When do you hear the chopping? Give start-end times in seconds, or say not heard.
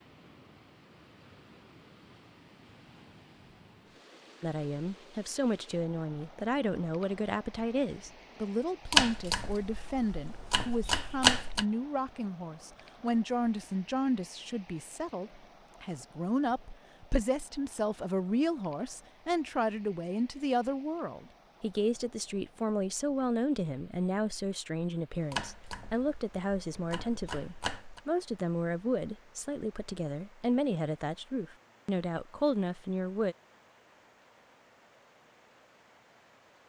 8.9-11.7, 25.3-28.0.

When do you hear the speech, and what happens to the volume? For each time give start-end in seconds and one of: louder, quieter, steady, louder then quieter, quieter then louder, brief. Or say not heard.
4.4-33.4 steady.